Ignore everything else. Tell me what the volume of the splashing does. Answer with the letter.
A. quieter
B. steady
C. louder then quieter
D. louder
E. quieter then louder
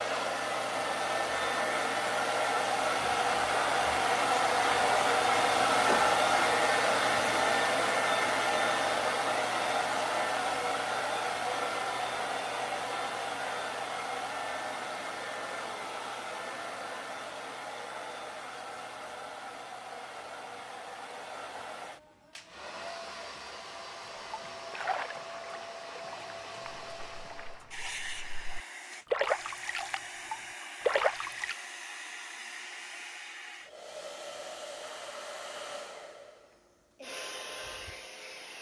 E.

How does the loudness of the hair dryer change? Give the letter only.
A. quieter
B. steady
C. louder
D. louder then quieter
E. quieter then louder
A.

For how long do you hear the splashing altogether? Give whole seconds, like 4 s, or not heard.
7 s.